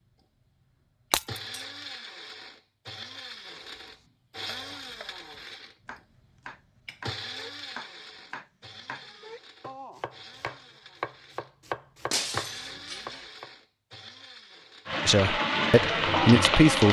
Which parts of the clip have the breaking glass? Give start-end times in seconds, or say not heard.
1.1-1.6, 12.1-13.2.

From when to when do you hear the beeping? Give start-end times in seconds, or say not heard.
not heard.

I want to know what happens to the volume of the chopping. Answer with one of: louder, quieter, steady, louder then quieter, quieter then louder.
louder.